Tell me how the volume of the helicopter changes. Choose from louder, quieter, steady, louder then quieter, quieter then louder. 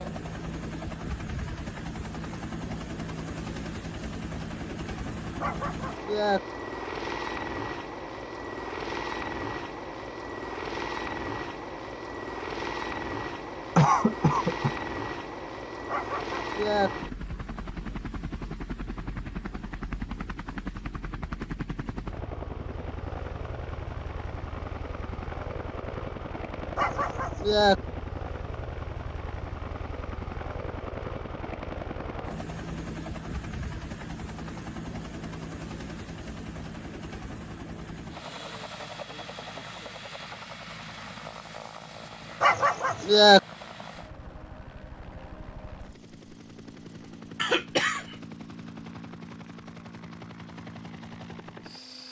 quieter.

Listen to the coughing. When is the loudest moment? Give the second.
14 s.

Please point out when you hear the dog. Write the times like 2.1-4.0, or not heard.
5.4-6.4, 15.9-16.9, 26.8-27.8, 42.4-43.4.